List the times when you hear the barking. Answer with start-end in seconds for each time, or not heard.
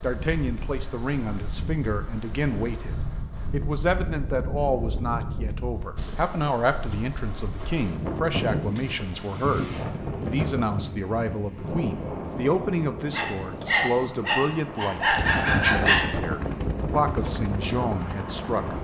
13.1-16.0.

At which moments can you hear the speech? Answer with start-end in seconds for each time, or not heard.
0.0-18.7.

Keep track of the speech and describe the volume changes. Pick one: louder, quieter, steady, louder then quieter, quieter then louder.
steady.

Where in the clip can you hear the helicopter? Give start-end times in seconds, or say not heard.
15.2-18.7.